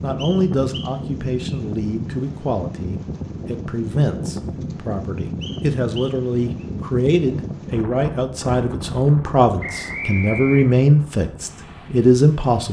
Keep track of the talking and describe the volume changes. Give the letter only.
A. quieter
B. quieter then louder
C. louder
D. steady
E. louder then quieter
C.